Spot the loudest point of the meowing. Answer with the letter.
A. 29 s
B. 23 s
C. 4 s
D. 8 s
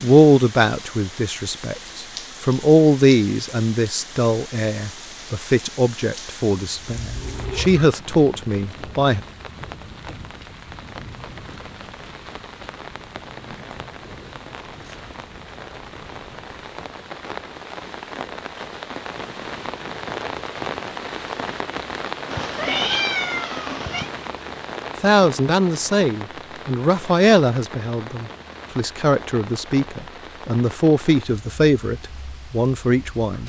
B.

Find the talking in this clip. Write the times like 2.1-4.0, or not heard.
0.0-9.2, 25.0-33.4.